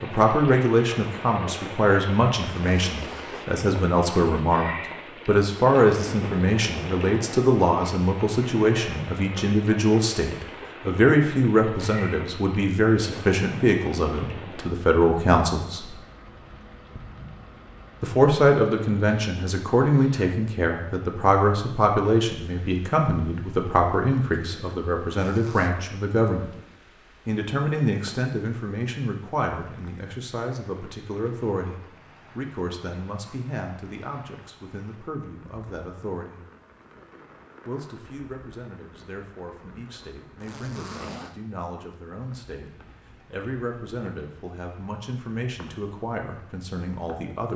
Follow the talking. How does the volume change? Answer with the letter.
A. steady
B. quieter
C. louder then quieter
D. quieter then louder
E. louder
B.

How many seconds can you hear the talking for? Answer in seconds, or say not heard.
43 s.